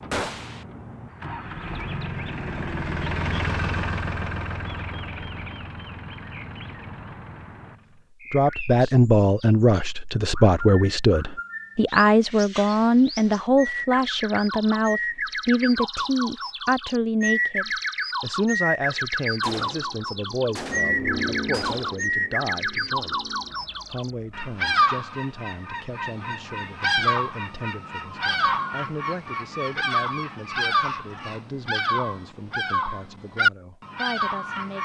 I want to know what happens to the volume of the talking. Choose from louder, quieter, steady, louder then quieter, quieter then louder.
quieter.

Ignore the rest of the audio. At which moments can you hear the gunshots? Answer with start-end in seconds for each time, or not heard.
0.1-0.7, 19.4-22.1.